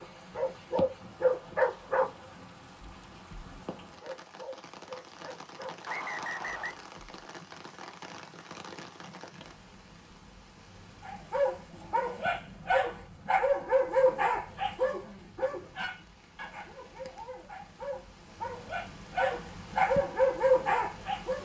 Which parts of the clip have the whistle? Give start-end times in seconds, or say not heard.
5.8-6.8.